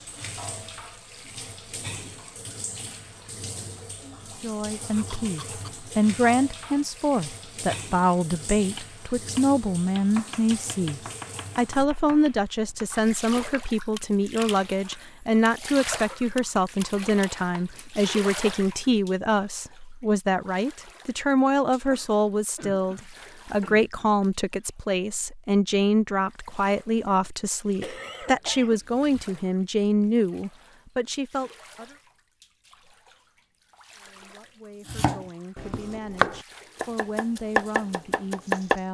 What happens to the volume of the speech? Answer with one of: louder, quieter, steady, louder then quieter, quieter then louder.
quieter.